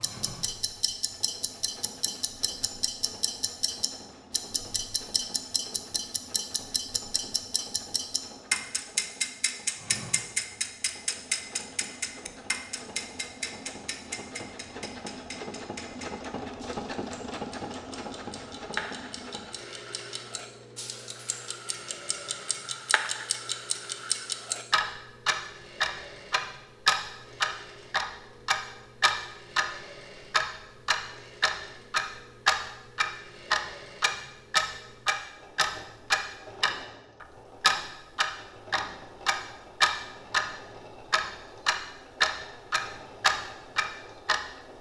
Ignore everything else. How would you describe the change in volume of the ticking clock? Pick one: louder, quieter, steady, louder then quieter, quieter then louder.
louder.